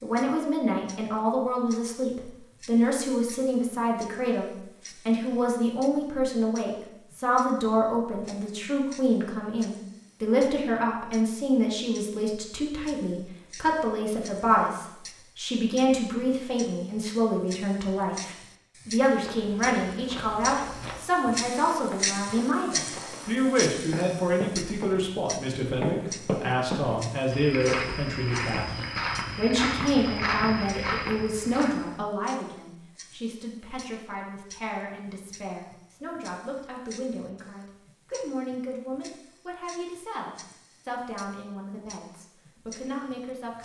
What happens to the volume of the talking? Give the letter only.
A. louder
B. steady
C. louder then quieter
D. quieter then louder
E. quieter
E.